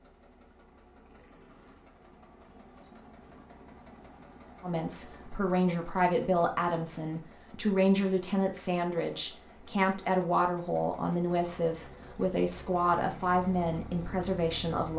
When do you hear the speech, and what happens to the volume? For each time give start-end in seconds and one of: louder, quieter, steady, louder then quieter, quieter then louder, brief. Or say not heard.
4.6-14.9 steady.